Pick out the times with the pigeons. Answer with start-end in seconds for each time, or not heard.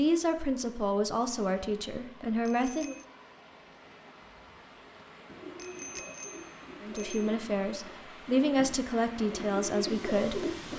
5.2-10.7.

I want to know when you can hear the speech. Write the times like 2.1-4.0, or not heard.
0.0-3.0, 6.8-10.6.